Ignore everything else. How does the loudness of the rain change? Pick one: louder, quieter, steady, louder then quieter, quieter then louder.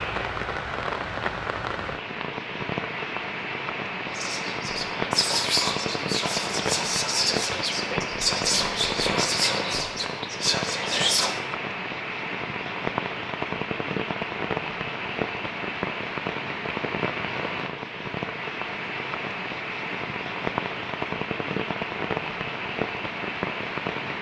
steady.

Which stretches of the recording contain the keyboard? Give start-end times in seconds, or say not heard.
not heard.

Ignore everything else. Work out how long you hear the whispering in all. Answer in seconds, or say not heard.
7 s.